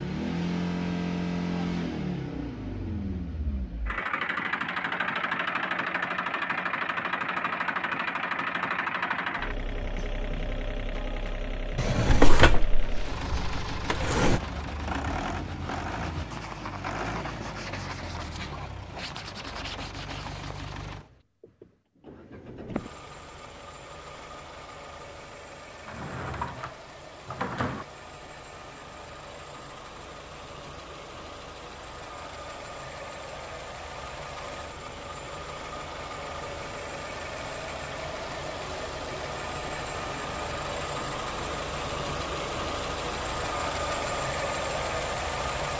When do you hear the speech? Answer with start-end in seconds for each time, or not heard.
not heard.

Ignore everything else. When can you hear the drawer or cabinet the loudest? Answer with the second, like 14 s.
12 s.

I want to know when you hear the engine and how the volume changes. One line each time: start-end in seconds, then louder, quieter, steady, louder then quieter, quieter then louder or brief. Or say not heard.
0.0-45.7 quieter then louder.